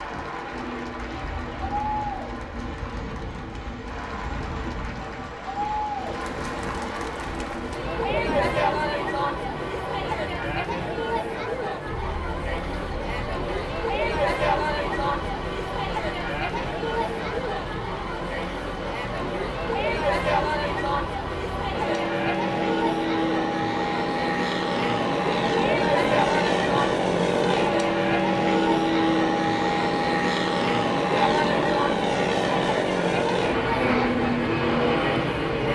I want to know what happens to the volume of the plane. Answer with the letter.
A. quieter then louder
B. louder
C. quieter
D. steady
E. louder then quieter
B.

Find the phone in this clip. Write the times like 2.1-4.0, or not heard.
not heard.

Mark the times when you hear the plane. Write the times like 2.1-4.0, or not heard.
0.0-35.7.